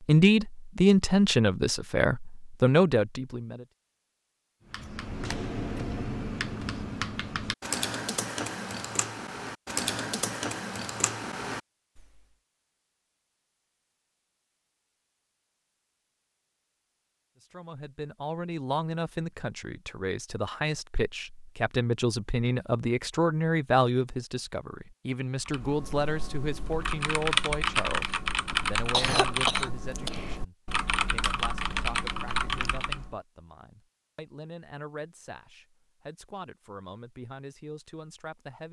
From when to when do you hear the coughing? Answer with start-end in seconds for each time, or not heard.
28.5-29.7.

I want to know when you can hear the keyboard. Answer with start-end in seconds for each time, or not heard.
4.7-12.2, 25.4-33.1.